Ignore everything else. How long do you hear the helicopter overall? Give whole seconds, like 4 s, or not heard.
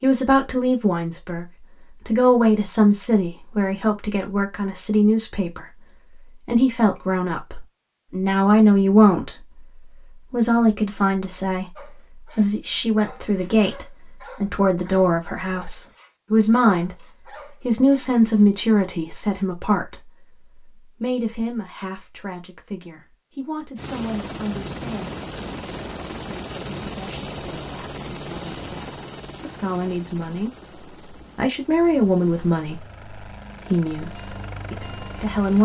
12 s.